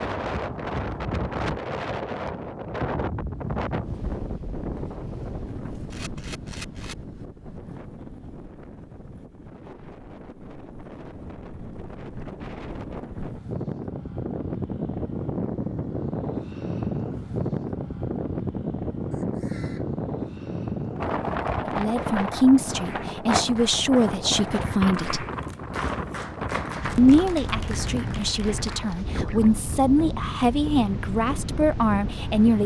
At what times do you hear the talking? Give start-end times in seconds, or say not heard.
21.6-25.2, 26.9-32.6.